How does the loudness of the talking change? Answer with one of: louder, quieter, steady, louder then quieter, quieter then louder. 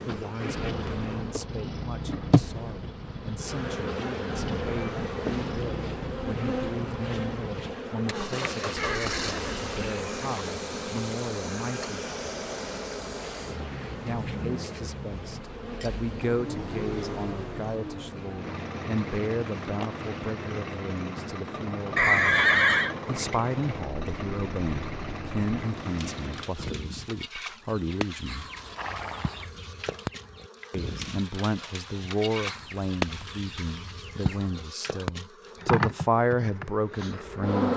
louder.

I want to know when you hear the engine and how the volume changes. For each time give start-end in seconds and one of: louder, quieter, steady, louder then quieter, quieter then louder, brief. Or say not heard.
0.0-26.6 steady.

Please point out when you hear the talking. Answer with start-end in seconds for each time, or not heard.
0.0-11.9, 14.1-22.4, 23.1-28.4, 30.7-37.7.